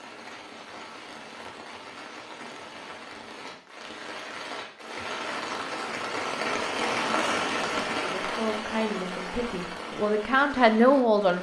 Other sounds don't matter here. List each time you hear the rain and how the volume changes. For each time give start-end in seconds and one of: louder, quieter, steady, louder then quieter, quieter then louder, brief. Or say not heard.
0.0-11.3 louder then quieter.